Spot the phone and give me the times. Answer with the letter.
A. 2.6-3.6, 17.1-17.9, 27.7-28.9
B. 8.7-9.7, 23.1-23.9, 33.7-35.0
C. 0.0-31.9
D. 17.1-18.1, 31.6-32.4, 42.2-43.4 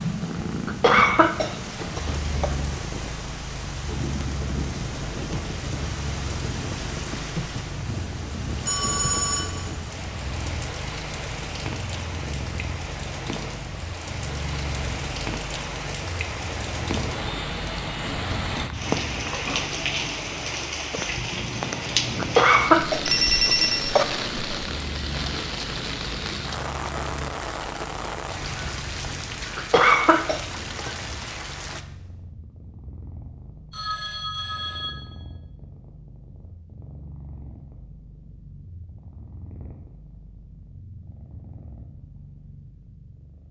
B.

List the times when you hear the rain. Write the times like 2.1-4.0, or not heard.
0.0-31.9.